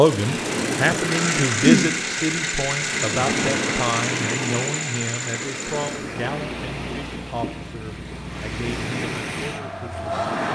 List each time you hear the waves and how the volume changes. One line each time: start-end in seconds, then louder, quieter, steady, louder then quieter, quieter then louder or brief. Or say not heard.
0.1-10.5 quieter.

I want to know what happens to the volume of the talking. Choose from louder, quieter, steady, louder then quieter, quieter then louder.
quieter.